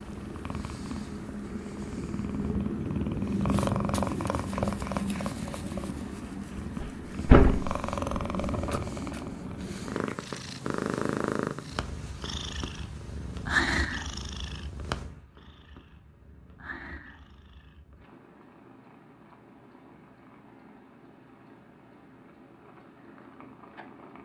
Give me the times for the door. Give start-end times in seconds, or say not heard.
6.8-8.8.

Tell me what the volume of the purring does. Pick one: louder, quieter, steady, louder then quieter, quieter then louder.
quieter.